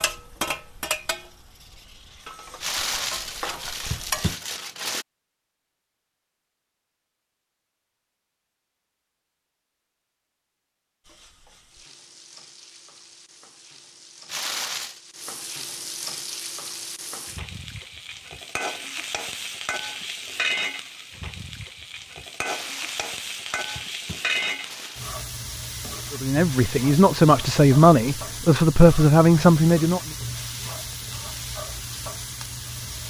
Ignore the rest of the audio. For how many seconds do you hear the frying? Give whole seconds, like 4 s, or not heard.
26 s.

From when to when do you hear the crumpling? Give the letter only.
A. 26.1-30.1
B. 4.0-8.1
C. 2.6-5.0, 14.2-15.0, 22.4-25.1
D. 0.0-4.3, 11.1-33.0
C.